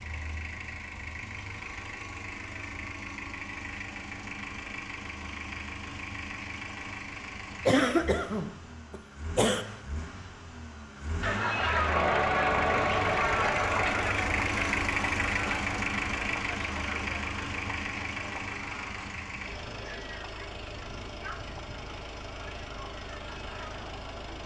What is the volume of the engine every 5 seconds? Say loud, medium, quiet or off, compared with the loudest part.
medium, medium, loud, loud, medium.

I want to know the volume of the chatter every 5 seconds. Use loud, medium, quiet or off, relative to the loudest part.
off, off, loud, quiet, quiet.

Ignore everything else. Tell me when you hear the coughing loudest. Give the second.
8 s.